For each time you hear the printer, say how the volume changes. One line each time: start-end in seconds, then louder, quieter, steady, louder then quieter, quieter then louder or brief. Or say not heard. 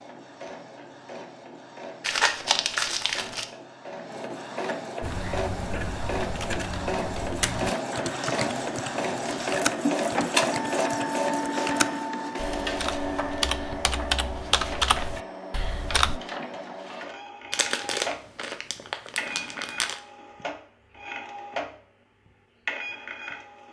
0.0-23.6 louder then quieter.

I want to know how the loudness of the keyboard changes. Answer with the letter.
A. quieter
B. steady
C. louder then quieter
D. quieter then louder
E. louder
E.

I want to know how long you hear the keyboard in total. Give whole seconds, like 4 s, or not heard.
11 s.